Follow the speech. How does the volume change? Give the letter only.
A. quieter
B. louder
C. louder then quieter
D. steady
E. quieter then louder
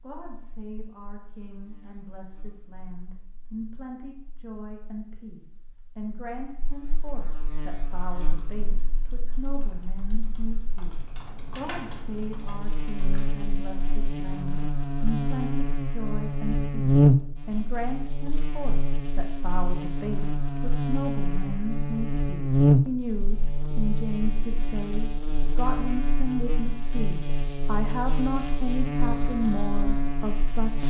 B.